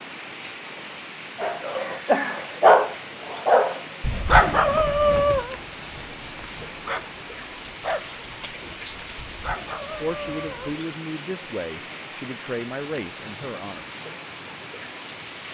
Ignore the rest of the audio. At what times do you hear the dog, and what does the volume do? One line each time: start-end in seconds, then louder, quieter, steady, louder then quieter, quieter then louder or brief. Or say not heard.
1.4-10.8 quieter.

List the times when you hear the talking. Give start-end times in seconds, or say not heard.
10.0-13.8.